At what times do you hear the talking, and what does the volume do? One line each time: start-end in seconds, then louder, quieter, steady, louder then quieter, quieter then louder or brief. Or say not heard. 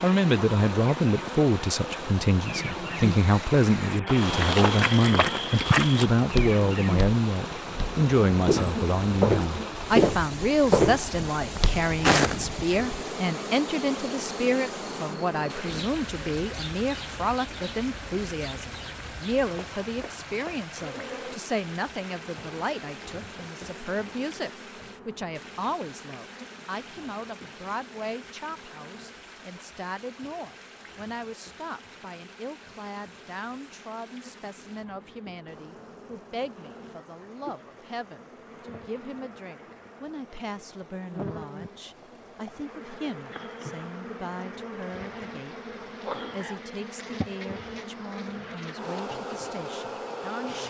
0.0-50.6 quieter.